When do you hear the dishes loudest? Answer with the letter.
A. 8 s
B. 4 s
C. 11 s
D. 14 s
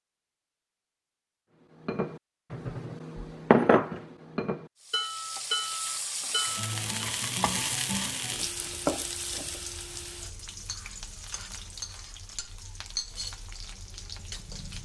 B.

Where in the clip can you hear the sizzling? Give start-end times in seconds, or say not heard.
4.8-14.7.